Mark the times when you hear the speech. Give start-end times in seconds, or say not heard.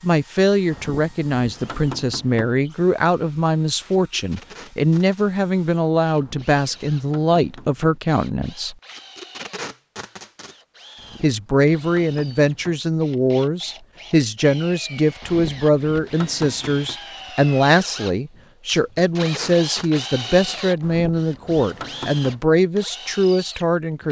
0.0-8.8, 11.2-24.0.